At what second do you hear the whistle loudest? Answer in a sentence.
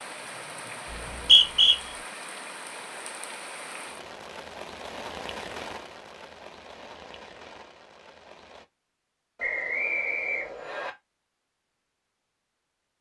The volume of the whistle peaks at 1 second.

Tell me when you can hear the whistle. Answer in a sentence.
The whistle can be heard from 0.9 to 1.8 s and from 9.3 to 10.9 s.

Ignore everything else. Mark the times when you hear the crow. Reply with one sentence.
The crow can't be heard in this clip.